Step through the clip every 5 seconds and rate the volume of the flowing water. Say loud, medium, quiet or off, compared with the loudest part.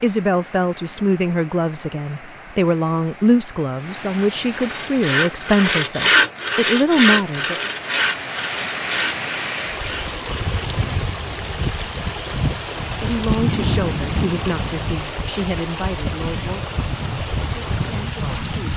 medium, loud, loud, loud.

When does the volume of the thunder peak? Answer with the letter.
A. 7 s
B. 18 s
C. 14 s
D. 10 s
C.